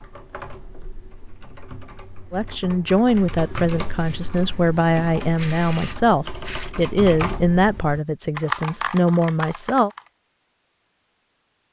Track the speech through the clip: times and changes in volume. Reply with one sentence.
The speech can be heard from 2.3 to 9.9 s, at a steady volume.